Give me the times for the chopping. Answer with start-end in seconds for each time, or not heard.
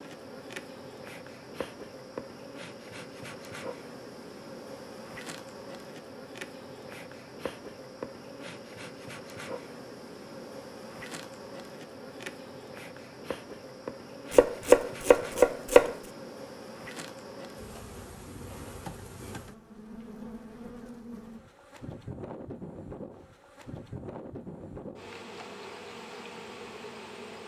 14.3-15.9.